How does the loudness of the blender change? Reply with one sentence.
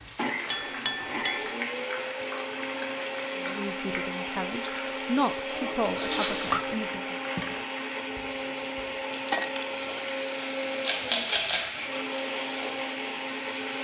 The volume of the blender stays about the same.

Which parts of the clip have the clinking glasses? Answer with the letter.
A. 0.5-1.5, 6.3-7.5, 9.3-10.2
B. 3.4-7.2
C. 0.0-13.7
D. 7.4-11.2
A.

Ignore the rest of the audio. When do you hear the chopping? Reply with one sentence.
The chopping can't be heard in this clip.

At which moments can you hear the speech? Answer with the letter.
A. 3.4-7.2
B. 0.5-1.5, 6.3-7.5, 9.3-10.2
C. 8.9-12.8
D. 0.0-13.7
A.